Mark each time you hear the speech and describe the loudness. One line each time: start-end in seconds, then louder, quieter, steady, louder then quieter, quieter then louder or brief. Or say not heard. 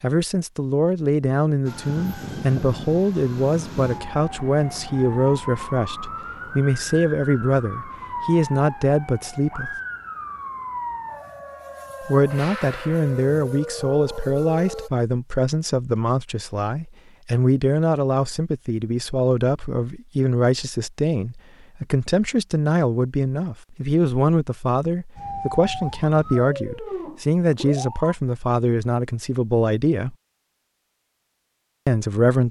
0.0-9.7 steady
12.0-30.1 steady
31.9-32.4 brief.